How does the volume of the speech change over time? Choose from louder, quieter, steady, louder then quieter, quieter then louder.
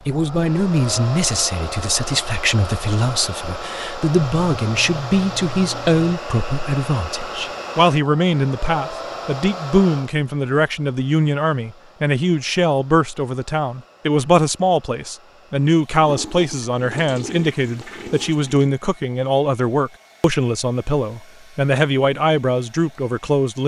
steady.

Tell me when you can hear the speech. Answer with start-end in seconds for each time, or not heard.
0.1-23.6.